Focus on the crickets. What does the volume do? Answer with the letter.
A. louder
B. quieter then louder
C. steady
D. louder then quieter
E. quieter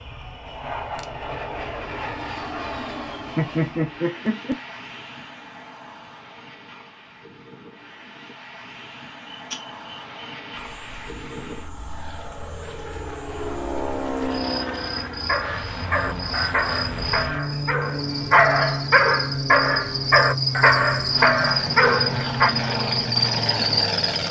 A.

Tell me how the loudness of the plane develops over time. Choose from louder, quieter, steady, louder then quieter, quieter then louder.
quieter then louder.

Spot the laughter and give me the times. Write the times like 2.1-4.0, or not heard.
3.4-4.5.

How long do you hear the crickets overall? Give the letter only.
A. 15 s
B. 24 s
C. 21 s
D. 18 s
A.